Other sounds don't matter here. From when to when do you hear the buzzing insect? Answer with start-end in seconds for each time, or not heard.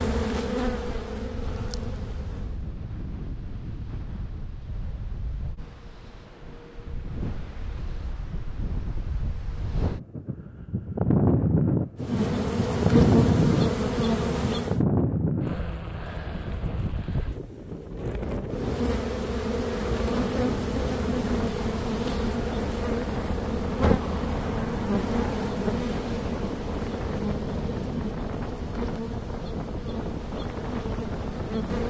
0.0-2.6, 11.9-14.8, 18.4-31.8.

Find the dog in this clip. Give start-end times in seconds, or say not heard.
not heard.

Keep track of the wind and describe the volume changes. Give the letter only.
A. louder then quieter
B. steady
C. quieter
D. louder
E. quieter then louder
A.